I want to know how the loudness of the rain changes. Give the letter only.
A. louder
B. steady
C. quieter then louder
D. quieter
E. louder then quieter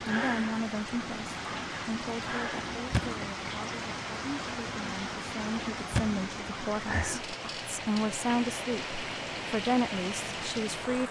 B.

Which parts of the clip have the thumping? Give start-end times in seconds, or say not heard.
2.9-3.5, 5.9-6.5.